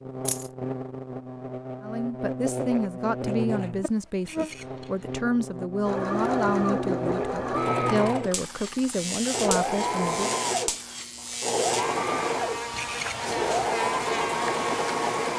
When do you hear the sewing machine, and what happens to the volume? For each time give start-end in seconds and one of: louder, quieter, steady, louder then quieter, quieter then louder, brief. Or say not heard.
5.8-15.3 steady.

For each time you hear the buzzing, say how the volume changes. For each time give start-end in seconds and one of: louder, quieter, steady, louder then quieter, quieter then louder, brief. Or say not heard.
0.0-15.3 steady.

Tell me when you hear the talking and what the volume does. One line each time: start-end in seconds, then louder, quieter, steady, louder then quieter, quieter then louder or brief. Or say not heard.
1.8-10.3 steady.